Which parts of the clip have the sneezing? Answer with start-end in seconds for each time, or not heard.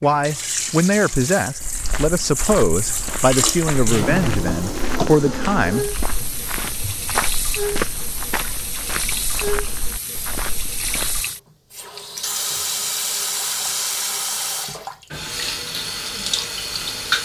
not heard.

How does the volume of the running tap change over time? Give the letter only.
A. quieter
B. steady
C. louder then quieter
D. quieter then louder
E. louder
B.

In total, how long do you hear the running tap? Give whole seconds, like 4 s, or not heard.
17 s.